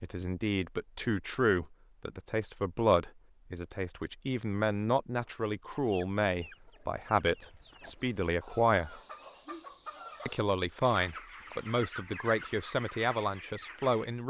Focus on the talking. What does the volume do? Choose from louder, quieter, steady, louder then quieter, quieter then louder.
steady.